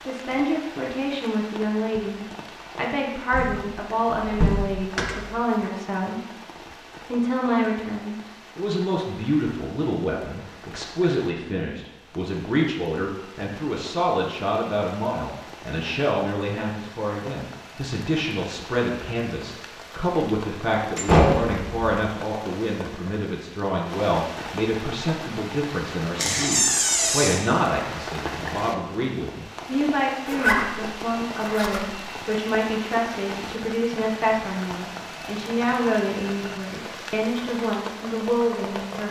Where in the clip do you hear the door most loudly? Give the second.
21 s.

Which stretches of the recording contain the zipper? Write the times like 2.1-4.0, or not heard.
30.2-32.0.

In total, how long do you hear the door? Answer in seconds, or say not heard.
4 s.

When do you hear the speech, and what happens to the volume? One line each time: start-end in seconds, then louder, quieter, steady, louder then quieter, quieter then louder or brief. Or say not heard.
0.1-6.2 steady
7.0-39.0 steady.